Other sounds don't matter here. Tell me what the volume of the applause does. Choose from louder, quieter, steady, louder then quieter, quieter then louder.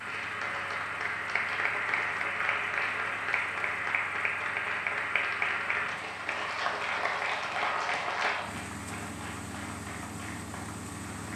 quieter.